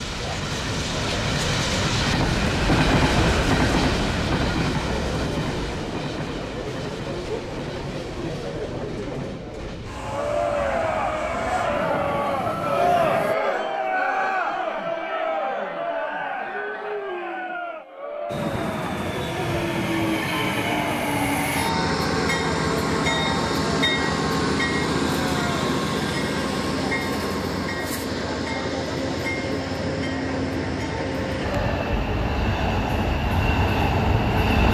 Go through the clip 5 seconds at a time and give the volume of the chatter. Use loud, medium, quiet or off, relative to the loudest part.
medium, medium, loud, medium, medium, medium, medium.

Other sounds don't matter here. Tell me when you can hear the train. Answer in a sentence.
The train can be heard from 0.0 to 13.3 s and from 18.3 to 34.6 s.